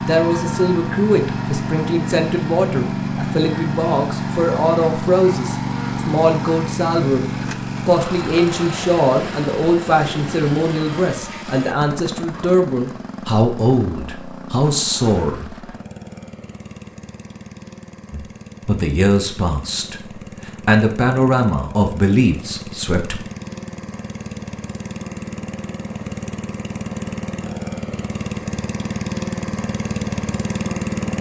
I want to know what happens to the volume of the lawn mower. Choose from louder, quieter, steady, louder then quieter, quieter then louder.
quieter then louder.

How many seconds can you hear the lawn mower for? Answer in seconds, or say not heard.
31 s.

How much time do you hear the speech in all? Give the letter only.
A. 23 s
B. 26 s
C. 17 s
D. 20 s
D.